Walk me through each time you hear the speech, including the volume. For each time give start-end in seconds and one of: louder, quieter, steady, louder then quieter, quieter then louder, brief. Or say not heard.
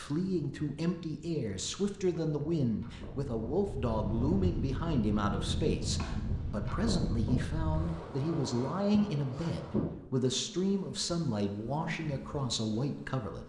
0.0-13.4 steady.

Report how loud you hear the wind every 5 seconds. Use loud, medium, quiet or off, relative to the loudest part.
loud, loud, off.